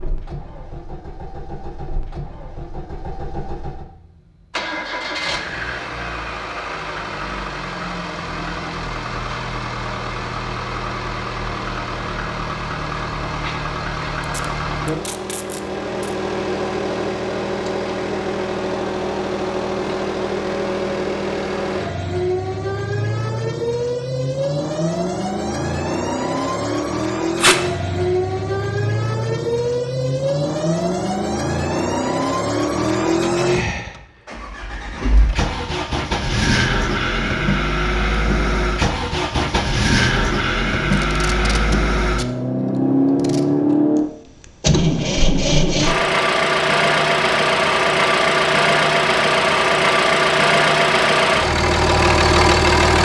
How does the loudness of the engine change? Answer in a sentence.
The loudness of the engine goes up.